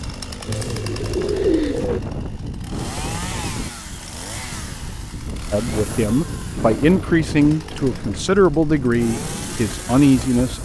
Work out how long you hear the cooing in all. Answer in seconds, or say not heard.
3 s.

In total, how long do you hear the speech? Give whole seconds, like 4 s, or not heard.
5 s.